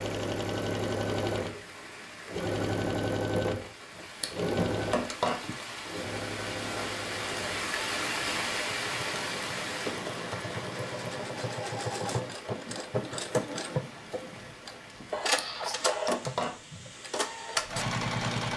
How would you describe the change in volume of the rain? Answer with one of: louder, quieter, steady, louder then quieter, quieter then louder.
louder then quieter.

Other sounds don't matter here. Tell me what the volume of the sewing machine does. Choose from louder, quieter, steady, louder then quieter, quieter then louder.
quieter then louder.